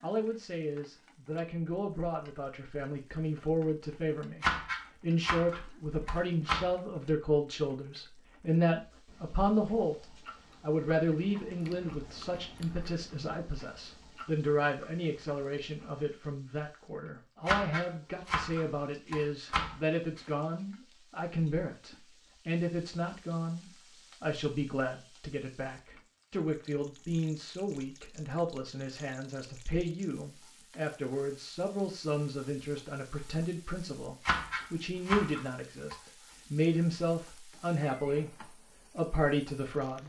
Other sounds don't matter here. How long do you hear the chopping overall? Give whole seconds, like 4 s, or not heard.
7 s.